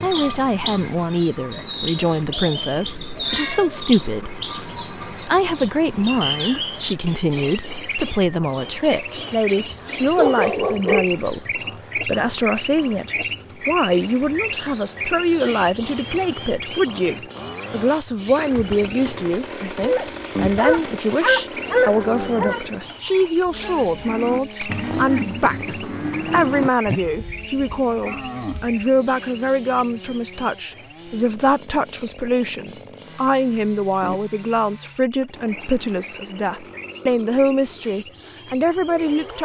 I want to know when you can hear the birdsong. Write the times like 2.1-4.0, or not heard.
0.0-39.3.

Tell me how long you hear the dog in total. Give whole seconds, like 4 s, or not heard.
4 s.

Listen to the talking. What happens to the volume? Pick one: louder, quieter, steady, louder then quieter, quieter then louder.
steady.